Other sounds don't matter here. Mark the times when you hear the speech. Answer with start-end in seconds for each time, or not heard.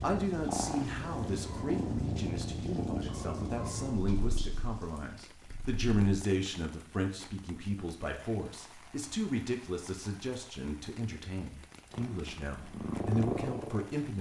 0.0-14.1.